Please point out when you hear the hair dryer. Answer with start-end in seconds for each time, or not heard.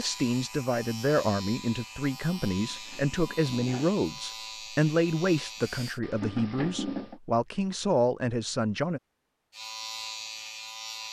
not heard.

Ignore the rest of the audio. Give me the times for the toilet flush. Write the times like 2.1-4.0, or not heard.
2.5-4.0, 6.0-7.2.